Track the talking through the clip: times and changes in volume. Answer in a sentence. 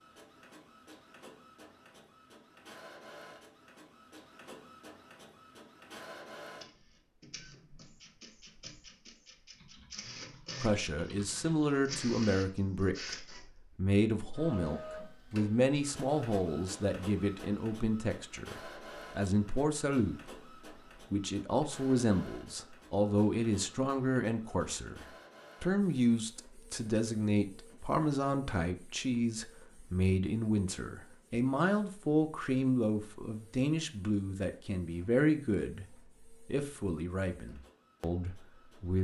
You can hear the talking from 10.6 to 20.2 s, at a steady volume; and from 21.1 to 38.9 s, at a steady volume.